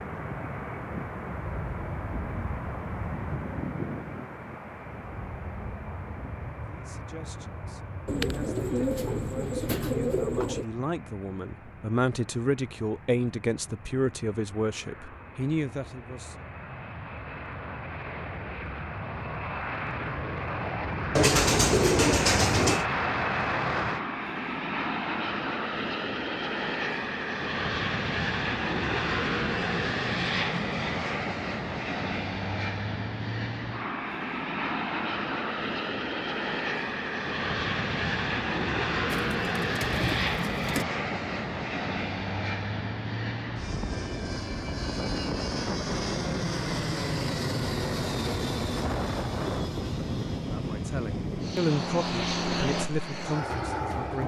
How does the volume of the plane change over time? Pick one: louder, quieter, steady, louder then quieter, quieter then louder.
louder.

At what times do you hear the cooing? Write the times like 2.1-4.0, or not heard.
8.1-10.7, 21.1-22.9, 39.1-40.9.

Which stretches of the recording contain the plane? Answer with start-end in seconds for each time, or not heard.
0.0-54.2.